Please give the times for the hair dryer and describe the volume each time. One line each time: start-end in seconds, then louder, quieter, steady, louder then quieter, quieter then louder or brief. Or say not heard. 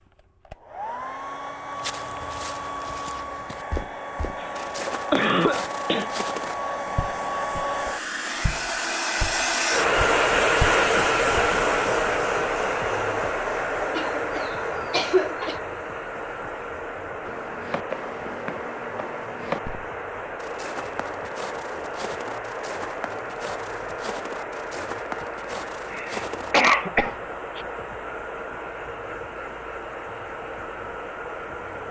0.0-31.8 louder then quieter.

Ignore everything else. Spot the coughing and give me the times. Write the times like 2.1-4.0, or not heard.
4.4-6.1, 13.9-15.6, 25.9-27.6.